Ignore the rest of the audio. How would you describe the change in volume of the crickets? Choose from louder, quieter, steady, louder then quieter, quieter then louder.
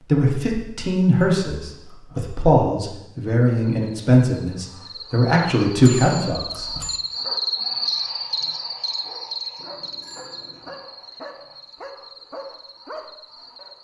louder then quieter.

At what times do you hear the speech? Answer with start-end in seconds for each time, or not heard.
0.1-6.8.